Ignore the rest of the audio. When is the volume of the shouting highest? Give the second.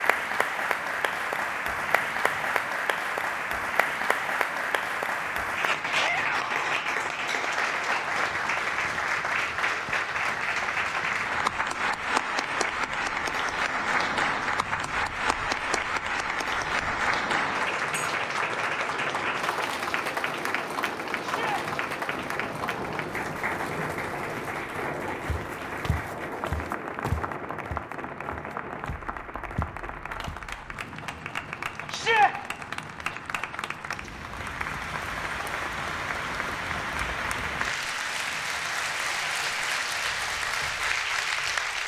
32 s.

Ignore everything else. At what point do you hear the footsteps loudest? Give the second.
27 s.